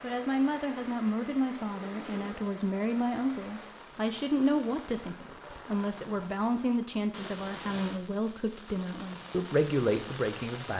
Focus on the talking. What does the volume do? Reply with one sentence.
The loudness of the talking stays about the same.